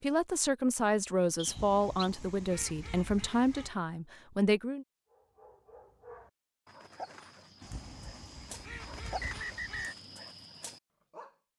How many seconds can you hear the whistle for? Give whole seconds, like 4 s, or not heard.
2 s.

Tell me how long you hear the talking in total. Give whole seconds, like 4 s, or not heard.
5 s.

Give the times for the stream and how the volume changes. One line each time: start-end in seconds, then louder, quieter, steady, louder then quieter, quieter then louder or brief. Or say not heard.
not heard.